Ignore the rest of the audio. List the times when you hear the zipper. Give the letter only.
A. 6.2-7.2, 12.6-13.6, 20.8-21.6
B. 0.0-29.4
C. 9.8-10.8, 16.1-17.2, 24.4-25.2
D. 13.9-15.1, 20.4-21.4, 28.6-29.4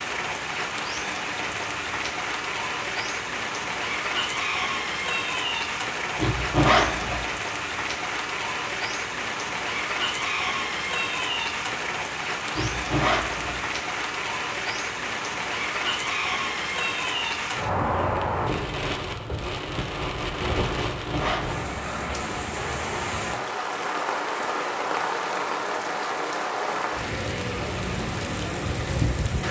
A.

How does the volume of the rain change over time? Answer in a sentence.
The volume of the rain stays about the same.